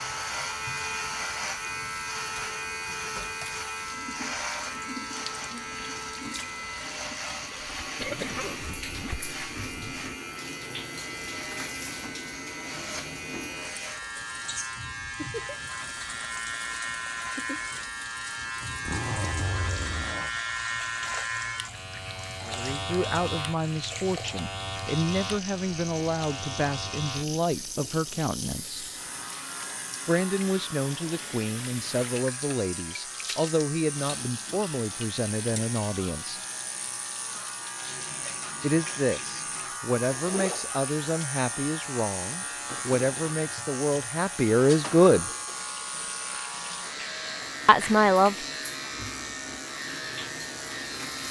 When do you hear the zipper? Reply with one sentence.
You can hear the zipper from 8.0 to 10.1 s, from 18.8 to 20.3 s and from 40.1 to 40.9 s.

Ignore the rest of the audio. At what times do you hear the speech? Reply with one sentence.
The speech can be heard from 22.4 to 28.9 s, from 30.1 to 36.4 s, from 38.6 to 45.2 s and from 47.6 to 48.4 s.